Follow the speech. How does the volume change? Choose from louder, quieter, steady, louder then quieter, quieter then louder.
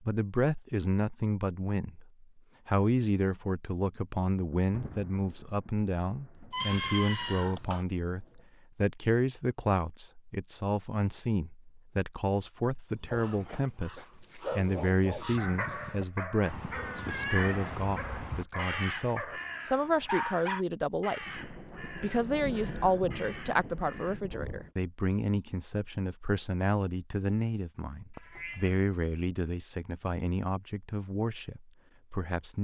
steady.